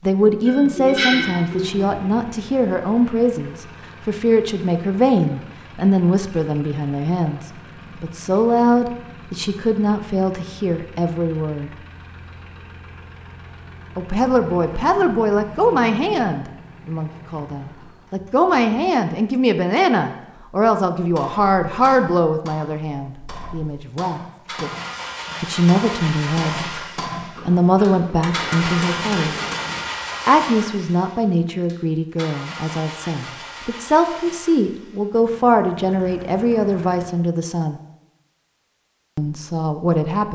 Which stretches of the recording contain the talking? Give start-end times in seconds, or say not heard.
0.0-11.7, 13.9-24.7, 25.4-26.8, 27.4-29.4, 30.2-37.8, 39.1-40.3.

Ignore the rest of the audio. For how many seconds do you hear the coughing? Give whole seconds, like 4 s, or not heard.
2 s.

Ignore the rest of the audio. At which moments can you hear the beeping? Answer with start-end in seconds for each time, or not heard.
not heard.